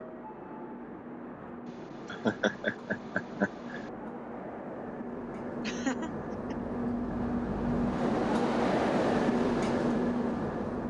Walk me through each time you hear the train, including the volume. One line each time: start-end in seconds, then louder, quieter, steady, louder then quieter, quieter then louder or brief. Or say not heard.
0.0-10.8 louder.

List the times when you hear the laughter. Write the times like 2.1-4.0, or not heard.
1.6-3.9, 5.6-6.5.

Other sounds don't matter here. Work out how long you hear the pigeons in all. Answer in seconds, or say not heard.
not heard.